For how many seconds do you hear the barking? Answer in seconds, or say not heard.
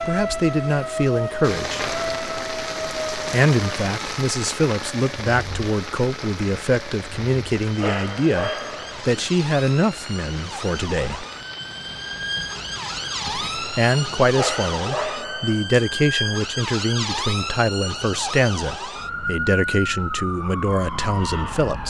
3 s.